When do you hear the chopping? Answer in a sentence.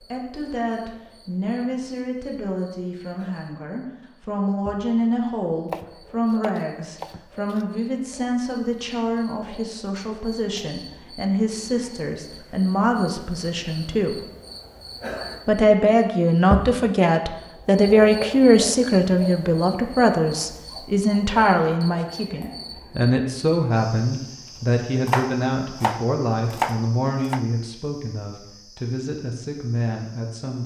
You can hear the chopping from 5.7 to 7.7 s and from 25.1 to 27.4 s.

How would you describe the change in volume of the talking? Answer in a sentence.
The volume of the talking goes up, then down.